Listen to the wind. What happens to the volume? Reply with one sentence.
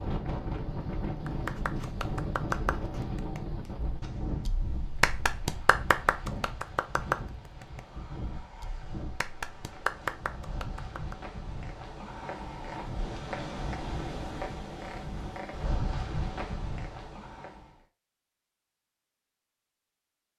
The loudness of the wind goes down, then up.